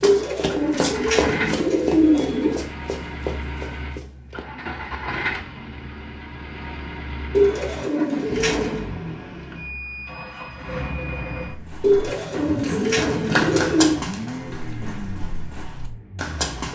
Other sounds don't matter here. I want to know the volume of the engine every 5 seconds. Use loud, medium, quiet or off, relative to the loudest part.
loud, loud, loud, medium.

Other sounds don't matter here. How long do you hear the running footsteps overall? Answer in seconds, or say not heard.
10 s.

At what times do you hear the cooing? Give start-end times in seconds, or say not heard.
0.0-2.6, 7.3-8.9, 11.8-14.0.